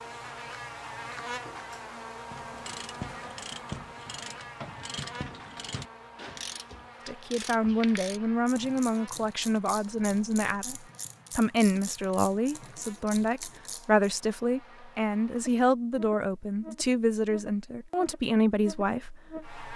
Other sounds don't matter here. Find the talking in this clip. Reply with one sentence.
The talking can be heard from 7.0 to 19.7 s.